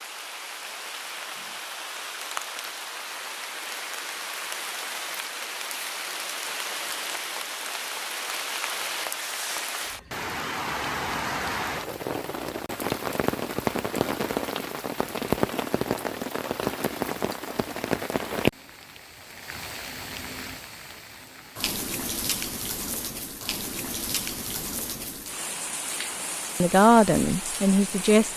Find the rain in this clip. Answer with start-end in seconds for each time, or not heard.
0.0-28.3.